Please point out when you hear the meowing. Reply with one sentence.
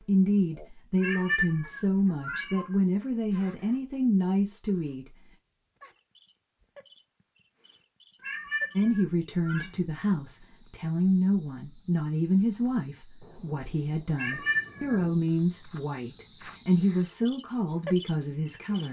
The meowing can be heard from 1.0 to 2.8 s, from 8.2 to 9.7 s and from 14.2 to 15.0 s.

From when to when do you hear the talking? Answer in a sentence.
You can hear the talking from 0.1 to 5.3 s and from 8.8 to 18.8 s.